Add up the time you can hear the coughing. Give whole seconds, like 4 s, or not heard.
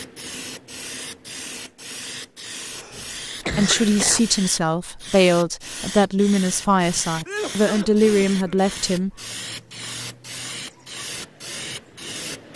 3 s.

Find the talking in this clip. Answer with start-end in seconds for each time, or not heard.
3.5-9.1.